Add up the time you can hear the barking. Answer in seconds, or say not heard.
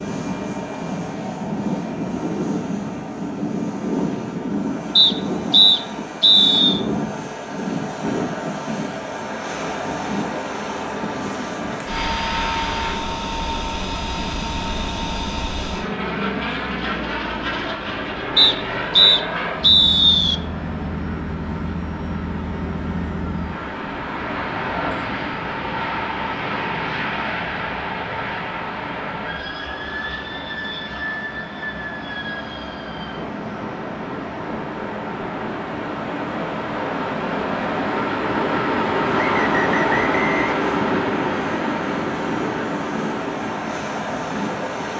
not heard.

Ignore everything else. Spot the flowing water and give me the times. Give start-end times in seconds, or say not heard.
9.4-44.9.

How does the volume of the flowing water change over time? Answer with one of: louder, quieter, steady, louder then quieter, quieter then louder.
louder.